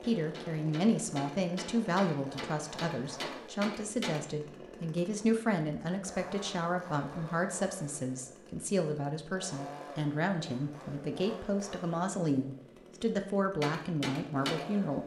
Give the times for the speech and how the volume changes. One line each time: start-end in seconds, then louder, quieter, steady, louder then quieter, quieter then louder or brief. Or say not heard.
0.0-15.0 steady.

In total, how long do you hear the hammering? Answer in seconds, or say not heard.
5 s.